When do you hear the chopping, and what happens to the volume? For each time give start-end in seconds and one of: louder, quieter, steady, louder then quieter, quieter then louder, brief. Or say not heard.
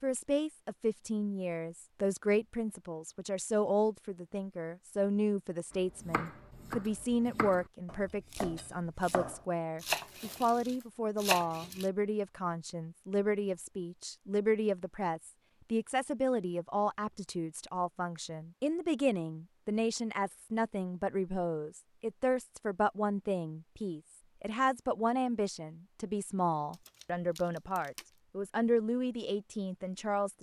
5.9-11.9 louder.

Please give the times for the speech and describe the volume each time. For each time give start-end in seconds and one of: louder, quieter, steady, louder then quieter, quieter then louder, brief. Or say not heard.
0.0-30.3 steady.